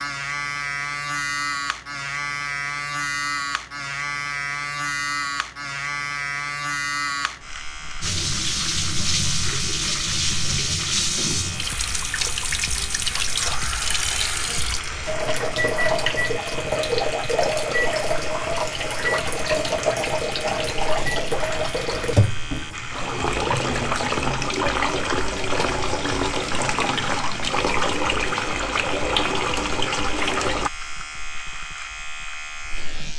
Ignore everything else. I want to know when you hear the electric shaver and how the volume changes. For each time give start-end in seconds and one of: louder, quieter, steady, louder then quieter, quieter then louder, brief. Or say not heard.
0.0-33.1 quieter.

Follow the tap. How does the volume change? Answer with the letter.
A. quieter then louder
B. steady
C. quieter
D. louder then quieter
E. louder
B.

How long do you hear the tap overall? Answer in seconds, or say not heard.
23 s.